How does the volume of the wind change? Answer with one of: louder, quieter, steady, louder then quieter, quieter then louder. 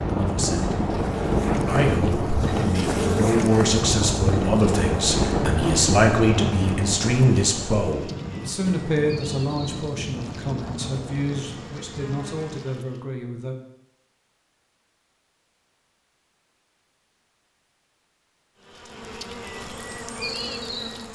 quieter.